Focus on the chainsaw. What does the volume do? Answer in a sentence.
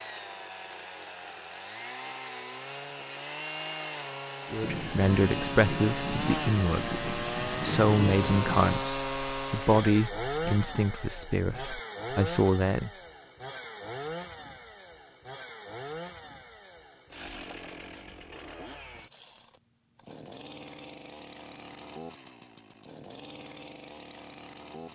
The loudness of the chainsaw goes up, then down.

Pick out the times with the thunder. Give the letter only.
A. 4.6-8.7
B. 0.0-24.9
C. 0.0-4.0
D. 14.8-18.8
A.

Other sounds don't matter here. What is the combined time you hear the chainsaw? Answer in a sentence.
You can hear the chainsaw for 25 seconds altogether.